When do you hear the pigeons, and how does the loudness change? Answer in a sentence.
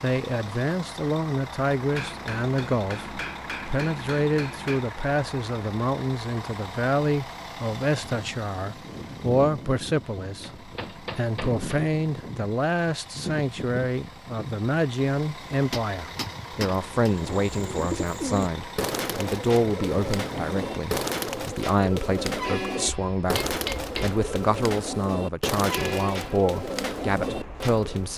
The pigeons can be heard from 17.1 to 28.1 s, at a steady volume.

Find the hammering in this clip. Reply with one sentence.
The hammering can be heard from 1.9 to 4.8 s, from 10.3 to 11.8 s, from 15.5 to 17.1 s and from 22.9 to 24.1 s.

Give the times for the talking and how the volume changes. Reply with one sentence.
You can hear the talking from 0.0 to 28.1 s, at a steady volume.